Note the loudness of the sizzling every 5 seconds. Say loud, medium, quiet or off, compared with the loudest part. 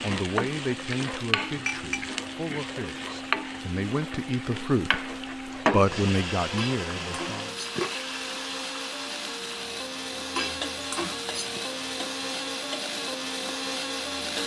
loud, loud, medium.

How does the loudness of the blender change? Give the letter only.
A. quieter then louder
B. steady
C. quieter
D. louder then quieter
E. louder
E.